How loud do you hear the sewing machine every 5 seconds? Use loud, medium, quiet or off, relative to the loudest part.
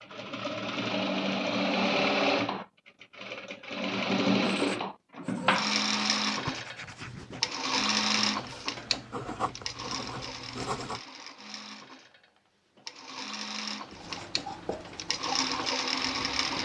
loud, loud, quiet, loud.